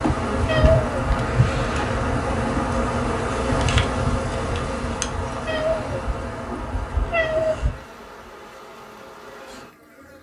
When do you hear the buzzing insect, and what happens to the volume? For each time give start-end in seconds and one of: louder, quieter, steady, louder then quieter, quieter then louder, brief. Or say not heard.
0.0-10.1 quieter.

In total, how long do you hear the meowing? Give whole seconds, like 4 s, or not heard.
3 s.